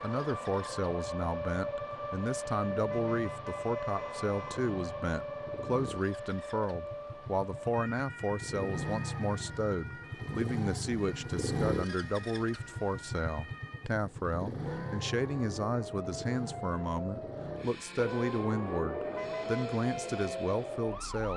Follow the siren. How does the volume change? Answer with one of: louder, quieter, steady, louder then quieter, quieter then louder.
quieter then louder.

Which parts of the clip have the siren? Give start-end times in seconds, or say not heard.
0.0-21.3.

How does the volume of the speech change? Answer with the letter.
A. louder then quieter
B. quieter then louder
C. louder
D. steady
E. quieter
D.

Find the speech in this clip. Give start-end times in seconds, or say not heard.
0.0-21.3.